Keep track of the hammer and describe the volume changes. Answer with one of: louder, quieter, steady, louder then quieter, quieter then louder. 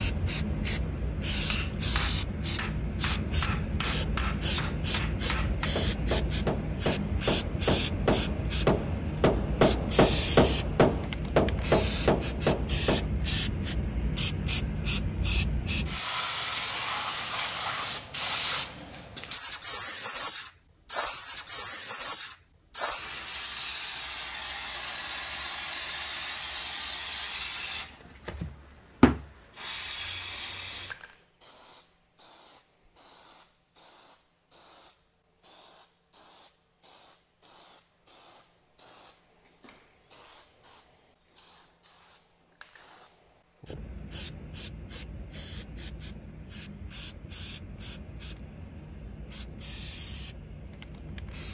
louder.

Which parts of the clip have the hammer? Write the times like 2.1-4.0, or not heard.
1.5-13.1.